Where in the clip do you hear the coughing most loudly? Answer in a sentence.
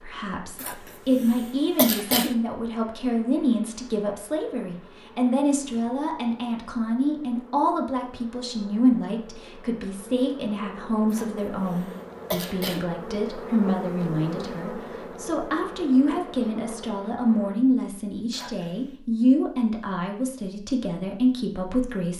The volume of the coughing peaks at 2 seconds.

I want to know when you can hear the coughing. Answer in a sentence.
You can hear the coughing from 0.6 to 2.4 s, from 11.1 to 12.8 s and from 18.3 to 18.9 s.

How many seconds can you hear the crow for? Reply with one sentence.
You can't hear the crow here.